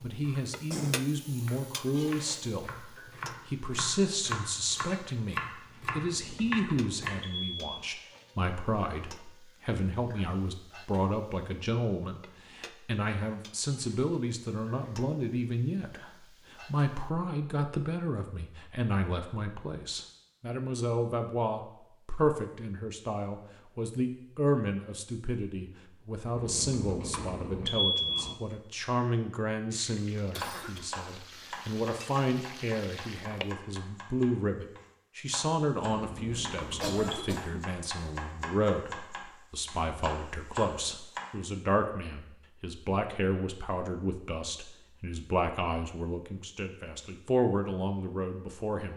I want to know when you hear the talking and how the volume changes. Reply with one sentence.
The talking can be heard from 0.0 to 48.9 s, at a steady volume.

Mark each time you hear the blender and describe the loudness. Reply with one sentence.
The blender can't be heard in this clip.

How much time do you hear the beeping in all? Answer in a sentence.
You can hear the beeping for 5 seconds altogether.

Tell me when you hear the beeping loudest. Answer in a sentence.
The loudest moment of the beeping is at 28 seconds.